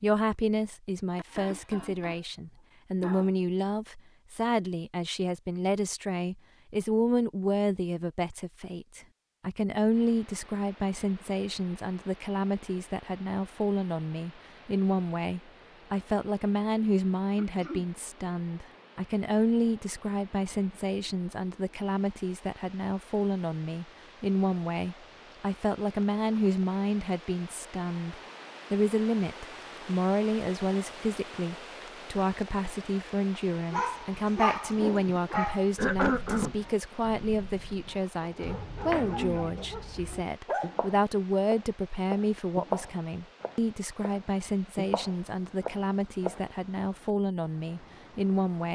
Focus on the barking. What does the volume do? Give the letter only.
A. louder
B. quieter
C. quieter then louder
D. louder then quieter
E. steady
C.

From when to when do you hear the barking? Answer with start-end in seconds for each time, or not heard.
33.7-40.8.